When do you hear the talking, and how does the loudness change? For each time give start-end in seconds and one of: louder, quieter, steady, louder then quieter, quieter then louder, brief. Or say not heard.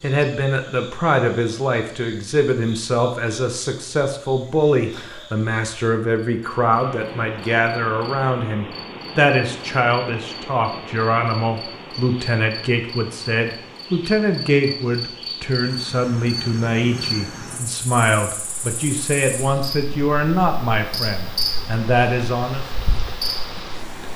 0.0-22.6 steady.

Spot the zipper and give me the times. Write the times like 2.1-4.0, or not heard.
not heard.